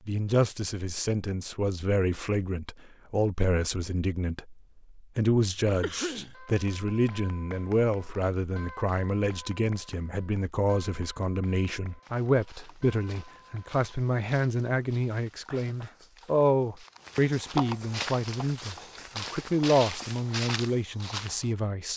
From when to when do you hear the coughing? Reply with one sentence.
You can hear the coughing from 5.8 to 6.3 s and from 15.4 to 16.0 s.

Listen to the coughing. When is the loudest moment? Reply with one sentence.
The volume of the coughing peaks at 6 seconds.